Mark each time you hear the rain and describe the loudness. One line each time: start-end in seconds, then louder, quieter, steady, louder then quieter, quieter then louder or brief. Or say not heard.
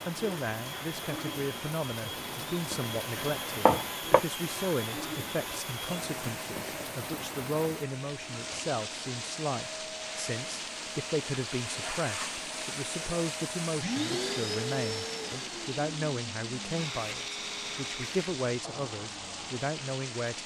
0.0-20.4 steady.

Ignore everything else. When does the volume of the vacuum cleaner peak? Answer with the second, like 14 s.
14 s.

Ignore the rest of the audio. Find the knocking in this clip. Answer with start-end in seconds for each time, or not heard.
3.1-4.2.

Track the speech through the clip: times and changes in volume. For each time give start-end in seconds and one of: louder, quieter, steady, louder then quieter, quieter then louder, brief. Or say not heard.
0.1-20.4 steady.